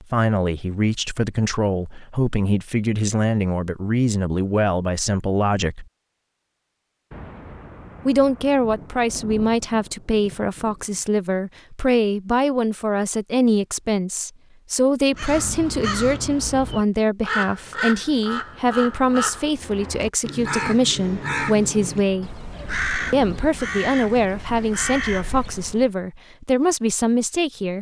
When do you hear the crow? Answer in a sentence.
You can hear the crow from 15.1 to 25.9 s.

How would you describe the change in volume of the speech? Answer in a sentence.
The loudness of the speech stays about the same.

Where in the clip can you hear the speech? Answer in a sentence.
You can hear the speech from 0.0 to 5.8 s, from 8.1 to 22.3 s and from 23.1 to 27.7 s.